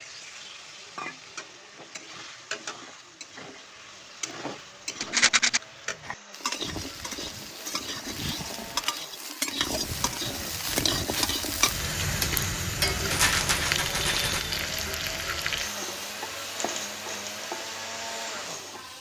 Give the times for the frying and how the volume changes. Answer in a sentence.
The frying can be heard from 0.0 to 18.9 s, getting louder then quieter.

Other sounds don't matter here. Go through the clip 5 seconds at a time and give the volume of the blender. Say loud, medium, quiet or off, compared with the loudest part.
quiet, medium, loud, loud.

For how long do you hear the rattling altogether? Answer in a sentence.
You can hear the rattling for 2 seconds altogether.